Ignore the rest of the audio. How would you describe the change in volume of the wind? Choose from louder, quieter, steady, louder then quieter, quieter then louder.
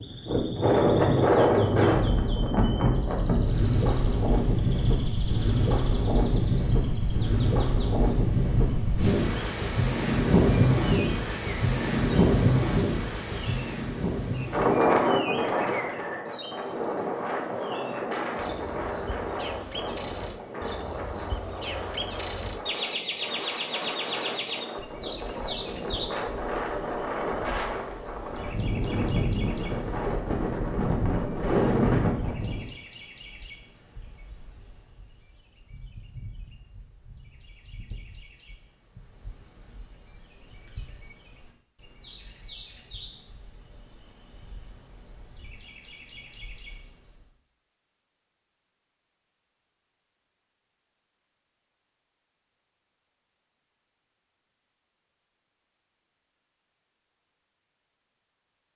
quieter then louder.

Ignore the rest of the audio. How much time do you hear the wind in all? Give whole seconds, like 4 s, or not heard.
33 s.